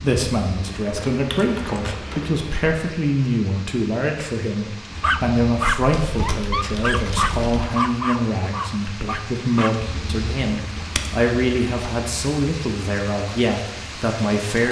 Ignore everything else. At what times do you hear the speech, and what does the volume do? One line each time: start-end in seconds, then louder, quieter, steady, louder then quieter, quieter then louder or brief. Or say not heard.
0.0-14.6 steady.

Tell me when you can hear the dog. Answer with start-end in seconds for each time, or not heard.
5.0-9.9.